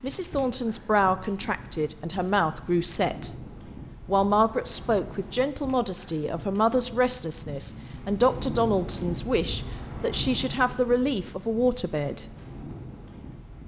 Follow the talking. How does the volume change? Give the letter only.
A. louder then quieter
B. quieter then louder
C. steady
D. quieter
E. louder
C.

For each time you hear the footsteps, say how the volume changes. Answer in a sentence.
The footsteps can't be heard in this clip.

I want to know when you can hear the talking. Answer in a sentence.
You can hear the talking from 0.0 to 3.4 s and from 4.0 to 12.2 s.